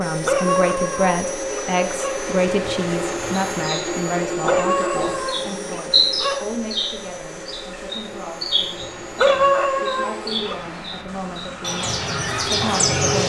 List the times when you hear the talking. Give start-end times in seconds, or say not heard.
0.0-13.2.